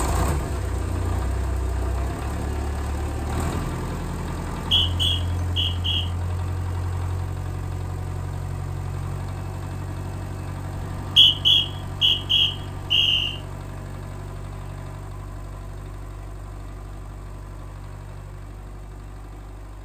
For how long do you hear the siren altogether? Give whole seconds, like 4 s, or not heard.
not heard.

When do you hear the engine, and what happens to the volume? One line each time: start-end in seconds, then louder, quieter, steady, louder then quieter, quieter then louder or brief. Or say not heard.
0.0-19.8 quieter.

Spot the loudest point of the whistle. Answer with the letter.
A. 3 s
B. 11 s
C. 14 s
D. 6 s
B.